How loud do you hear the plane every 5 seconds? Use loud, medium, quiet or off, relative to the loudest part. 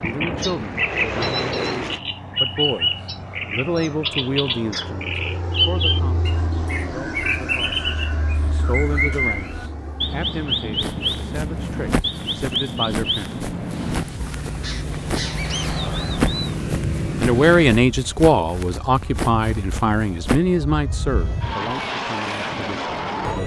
loud, medium, medium, loud, loud.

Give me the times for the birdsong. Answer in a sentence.
The birdsong can be heard from 0.0 to 16.6 s.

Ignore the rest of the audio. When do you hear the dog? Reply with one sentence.
The dog can't be heard in this clip.